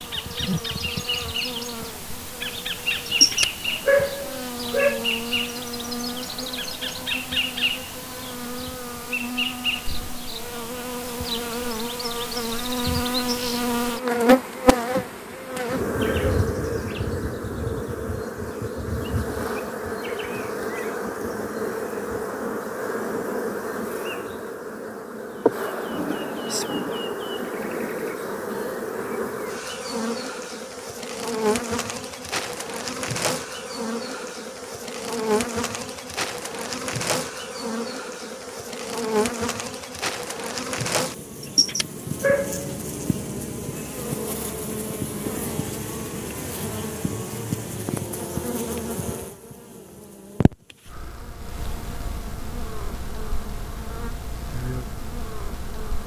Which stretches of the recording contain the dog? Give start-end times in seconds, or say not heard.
3.0-5.0, 41.4-42.8.